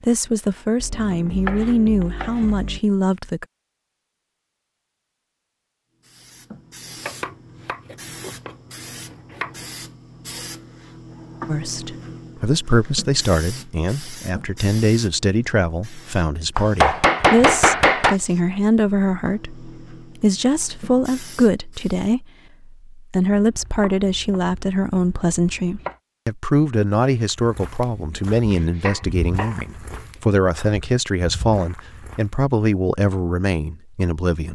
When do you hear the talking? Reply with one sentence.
The talking can be heard from 0.0 to 3.5 s and from 11.4 to 34.5 s.